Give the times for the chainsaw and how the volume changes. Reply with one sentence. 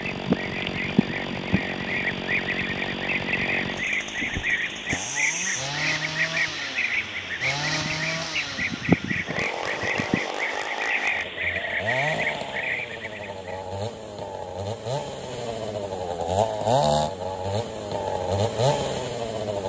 The chainsaw can be heard from 0.0 to 19.6 s, getting louder.